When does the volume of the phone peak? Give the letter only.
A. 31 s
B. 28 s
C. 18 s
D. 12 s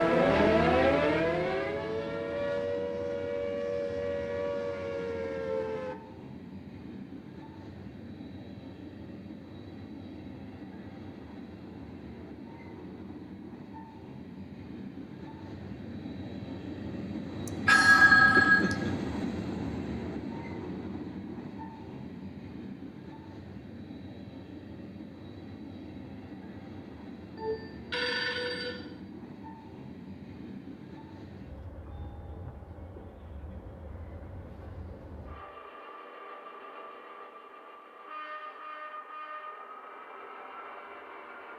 C.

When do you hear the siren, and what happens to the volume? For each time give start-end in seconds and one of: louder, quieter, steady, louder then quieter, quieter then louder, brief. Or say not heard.
0.0-6.0 quieter.